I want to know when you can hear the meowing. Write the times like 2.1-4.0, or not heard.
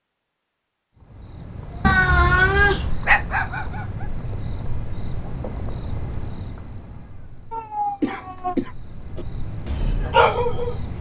1.8-3.0, 7.5-8.6.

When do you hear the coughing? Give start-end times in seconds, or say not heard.
8.0-8.8.